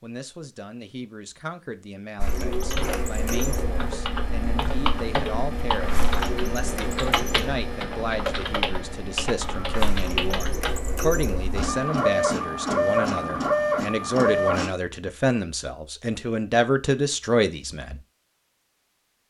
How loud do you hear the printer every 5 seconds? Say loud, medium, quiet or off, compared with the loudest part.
medium, medium, loud, off.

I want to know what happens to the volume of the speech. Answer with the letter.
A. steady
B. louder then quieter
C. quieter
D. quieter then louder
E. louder
E.